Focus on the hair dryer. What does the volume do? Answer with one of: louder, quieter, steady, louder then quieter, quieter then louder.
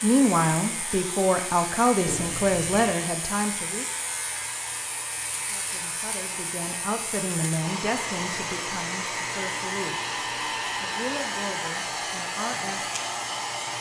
louder.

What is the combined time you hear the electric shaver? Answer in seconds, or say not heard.
14 s.